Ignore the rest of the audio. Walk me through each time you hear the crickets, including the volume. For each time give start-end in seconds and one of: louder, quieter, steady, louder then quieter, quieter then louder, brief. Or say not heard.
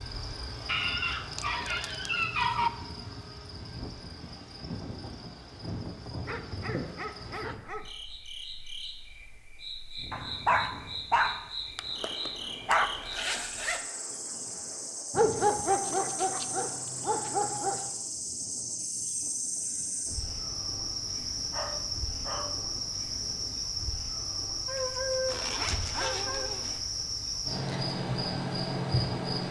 0.0-29.4 louder.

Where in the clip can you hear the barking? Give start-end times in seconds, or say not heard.
0.7-2.7, 6.2-7.9, 10.1-12.9, 15.1-17.9, 21.5-22.6, 24.6-26.6.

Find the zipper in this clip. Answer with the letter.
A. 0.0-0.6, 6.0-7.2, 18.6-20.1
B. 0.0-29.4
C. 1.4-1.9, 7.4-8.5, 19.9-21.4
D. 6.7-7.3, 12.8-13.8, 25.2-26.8
D.